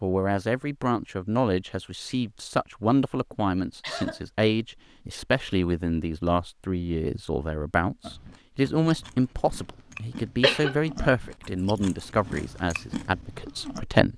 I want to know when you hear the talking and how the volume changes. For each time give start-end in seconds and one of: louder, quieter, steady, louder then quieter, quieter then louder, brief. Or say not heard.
0.0-14.1 steady.